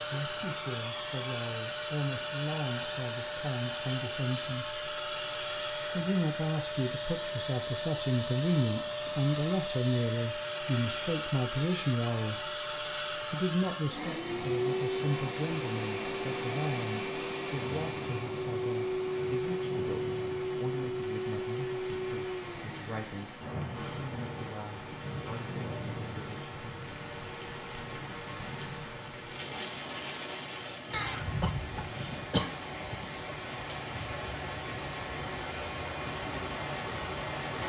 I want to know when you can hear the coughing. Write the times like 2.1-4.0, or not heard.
30.9-32.6.